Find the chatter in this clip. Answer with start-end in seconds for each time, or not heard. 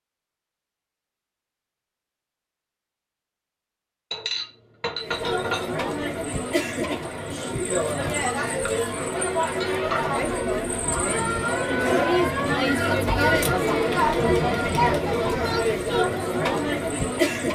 5.0-17.5.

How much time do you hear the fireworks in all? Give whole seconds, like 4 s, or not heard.
not heard.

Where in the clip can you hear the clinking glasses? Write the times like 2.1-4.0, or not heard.
4.1-5.7, 9.6-10.2.